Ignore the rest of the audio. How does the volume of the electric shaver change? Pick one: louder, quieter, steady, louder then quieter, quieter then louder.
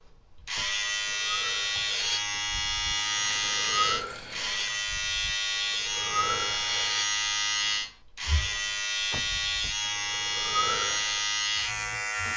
steady.